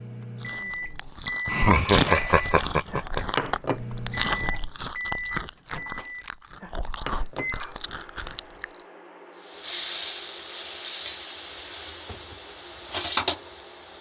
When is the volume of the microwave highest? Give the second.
4 s.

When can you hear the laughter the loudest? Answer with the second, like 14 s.
2 s.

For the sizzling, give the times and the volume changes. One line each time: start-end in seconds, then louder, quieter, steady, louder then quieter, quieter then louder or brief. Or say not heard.
9.3-13.9 quieter then louder.